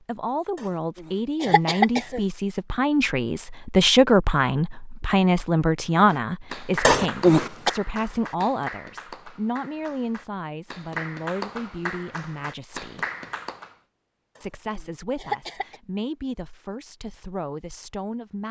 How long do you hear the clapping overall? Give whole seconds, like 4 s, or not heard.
8 s.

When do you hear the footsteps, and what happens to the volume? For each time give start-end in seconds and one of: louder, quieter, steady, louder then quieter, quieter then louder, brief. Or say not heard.
not heard.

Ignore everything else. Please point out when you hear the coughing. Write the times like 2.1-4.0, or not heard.
1.0-2.2, 6.8-7.7, 14.3-15.8.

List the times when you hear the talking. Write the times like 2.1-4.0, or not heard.
0.1-13.1, 14.4-18.4.